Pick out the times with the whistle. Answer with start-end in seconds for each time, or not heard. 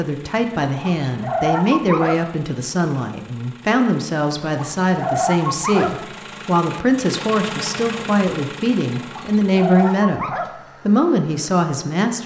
not heard.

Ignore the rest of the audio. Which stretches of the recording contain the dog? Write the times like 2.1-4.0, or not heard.
0.8-2.2, 4.4-6.0, 8.9-10.5.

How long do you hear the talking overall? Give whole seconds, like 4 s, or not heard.
12 s.